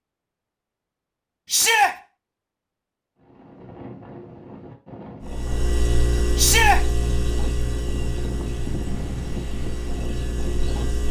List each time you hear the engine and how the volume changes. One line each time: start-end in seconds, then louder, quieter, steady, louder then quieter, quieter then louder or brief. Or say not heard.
5.2-11.0 quieter.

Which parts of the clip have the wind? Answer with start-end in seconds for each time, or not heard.
3.1-11.0.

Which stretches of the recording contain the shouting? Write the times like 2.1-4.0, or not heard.
1.5-1.9, 6.3-6.8.